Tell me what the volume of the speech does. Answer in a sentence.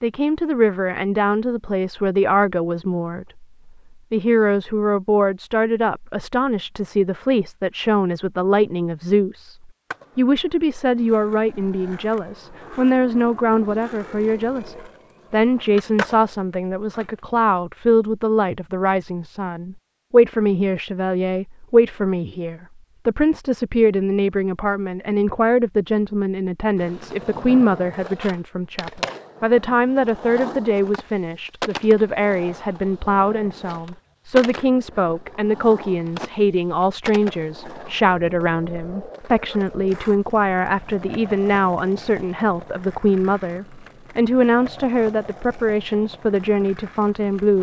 The volume of the speech stays about the same.